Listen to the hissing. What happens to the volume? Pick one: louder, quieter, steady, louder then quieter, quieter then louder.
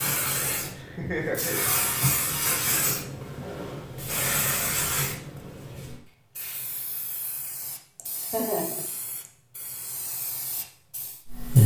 quieter.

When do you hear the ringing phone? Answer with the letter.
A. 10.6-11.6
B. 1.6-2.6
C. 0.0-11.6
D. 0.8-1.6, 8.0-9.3
B.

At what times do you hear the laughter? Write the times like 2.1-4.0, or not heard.
0.8-1.6, 8.0-9.3.